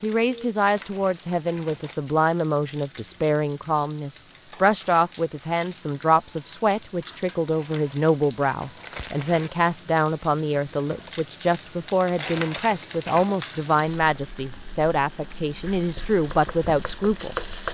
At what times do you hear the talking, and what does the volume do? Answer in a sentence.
You can hear the talking from 0.0 to 17.6 s, at a steady volume.